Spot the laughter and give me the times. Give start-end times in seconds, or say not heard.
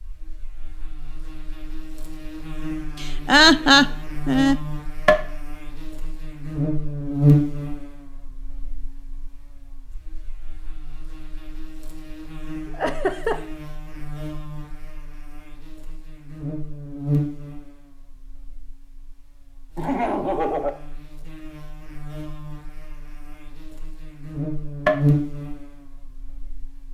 3.0-4.5, 12.7-13.4, 19.8-20.8.